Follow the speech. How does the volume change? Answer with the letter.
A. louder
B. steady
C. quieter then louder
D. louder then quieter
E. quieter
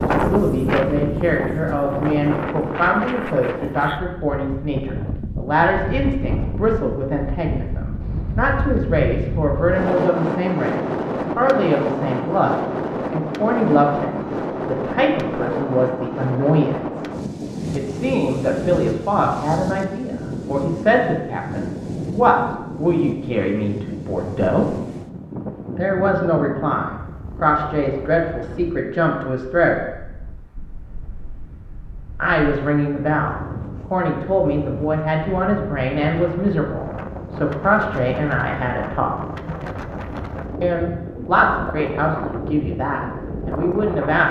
B.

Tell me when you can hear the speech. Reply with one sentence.
You can hear the speech from 0.1 to 17.1 s, from 17.7 to 24.7 s, from 25.8 to 29.8 s, from 32.2 to 39.1 s and from 40.6 to 44.2 s.